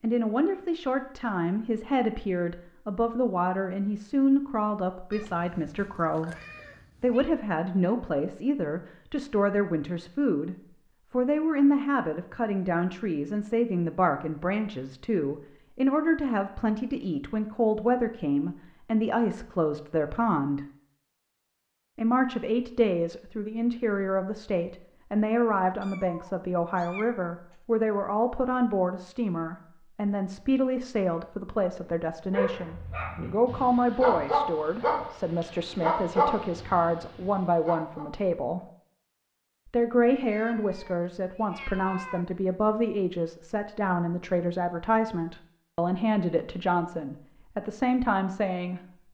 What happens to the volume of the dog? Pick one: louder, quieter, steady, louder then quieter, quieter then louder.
louder then quieter.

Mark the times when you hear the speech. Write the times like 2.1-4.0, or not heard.
0.0-6.3, 7.0-20.6, 21.9-38.6, 39.6-49.1.